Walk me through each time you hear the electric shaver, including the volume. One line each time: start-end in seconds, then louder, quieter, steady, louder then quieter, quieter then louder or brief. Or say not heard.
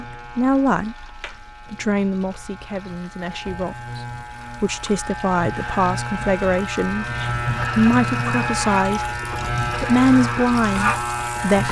0.0-11.6 louder.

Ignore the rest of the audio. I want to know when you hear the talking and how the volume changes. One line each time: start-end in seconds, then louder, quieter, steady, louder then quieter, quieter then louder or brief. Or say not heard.
0.0-11.6 quieter then louder.